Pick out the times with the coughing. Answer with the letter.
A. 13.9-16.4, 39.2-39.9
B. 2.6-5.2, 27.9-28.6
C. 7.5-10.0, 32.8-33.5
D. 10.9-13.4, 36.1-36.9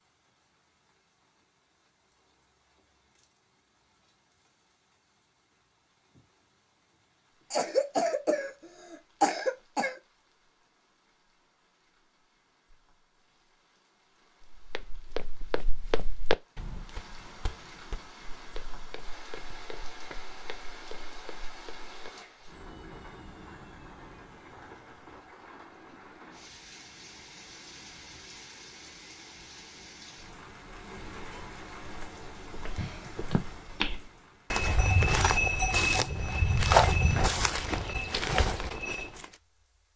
C.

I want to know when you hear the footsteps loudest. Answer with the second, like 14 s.
37 s.